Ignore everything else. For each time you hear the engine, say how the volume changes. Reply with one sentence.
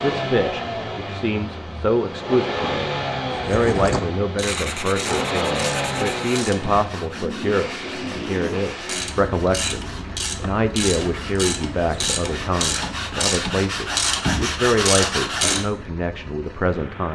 The engine can be heard from 0.0 to 17.1 s, getting quieter.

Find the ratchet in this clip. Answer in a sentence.
The ratchet can be heard from 4.3 to 6.9 s and from 8.7 to 15.6 s.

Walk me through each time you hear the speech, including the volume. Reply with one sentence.
The speech can be heard from 0.0 to 17.1 s, at a steady volume.